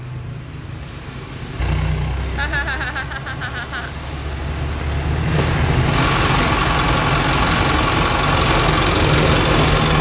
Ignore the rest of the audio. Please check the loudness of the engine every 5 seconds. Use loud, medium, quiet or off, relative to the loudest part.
medium, loud.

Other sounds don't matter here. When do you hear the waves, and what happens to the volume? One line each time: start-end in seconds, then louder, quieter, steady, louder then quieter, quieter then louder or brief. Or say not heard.
0.0-9.9 louder.